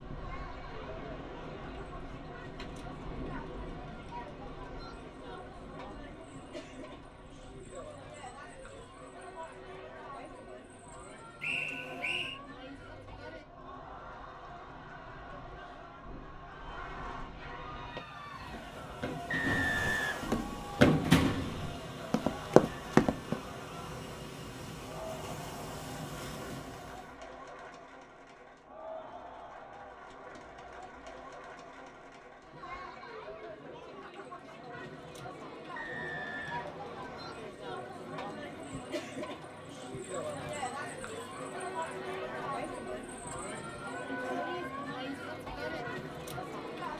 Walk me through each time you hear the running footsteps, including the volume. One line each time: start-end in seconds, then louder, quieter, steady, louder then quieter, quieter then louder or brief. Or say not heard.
17.9-23.4 louder.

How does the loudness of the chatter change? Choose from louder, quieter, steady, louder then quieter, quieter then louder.
louder.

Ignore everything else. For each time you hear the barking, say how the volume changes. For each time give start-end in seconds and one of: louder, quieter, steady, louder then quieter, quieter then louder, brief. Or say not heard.
not heard.